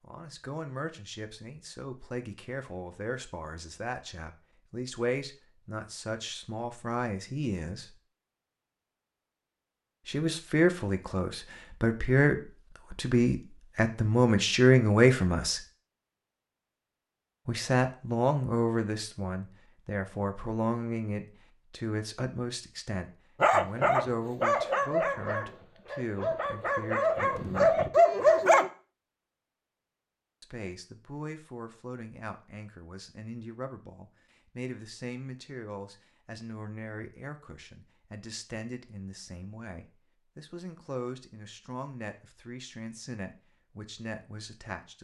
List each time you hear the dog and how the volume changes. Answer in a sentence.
You can hear the dog from 23.4 to 28.7 s, getting quieter then louder.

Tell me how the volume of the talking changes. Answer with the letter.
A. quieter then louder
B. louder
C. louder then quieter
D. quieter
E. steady
C.